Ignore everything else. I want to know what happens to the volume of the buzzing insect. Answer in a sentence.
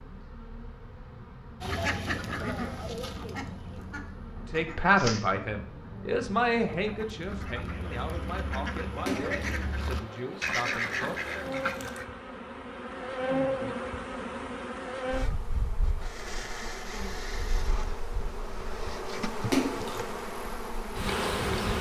The loudness of the buzzing insect goes up.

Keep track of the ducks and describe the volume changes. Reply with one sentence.
The loudness of the ducks goes down, then up.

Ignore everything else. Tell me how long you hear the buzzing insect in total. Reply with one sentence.
The buzzing insect can be heard for 22 seconds in total.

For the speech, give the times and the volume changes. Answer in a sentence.
The speech can be heard from 4.5 to 11.2 s, getting quieter.